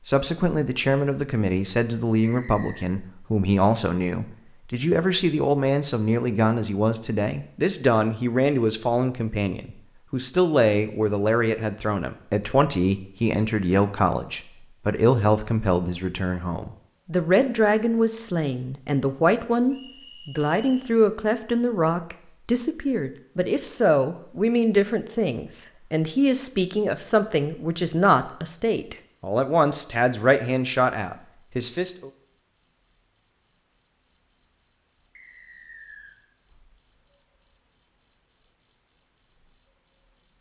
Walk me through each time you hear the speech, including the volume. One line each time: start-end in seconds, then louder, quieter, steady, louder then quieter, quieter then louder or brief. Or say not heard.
0.1-32.1 steady.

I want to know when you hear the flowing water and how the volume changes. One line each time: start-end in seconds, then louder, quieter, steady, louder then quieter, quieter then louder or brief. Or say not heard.
not heard.